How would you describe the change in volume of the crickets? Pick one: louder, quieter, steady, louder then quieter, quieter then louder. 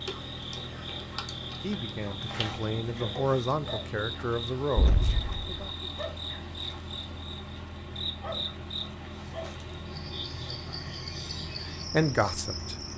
steady.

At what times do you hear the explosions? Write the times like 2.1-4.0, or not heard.
4.8-5.6.